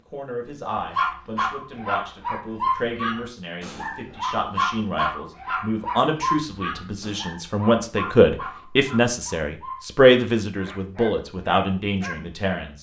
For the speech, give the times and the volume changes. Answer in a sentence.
You can hear the speech from 0.1 to 12.7 s, getting louder.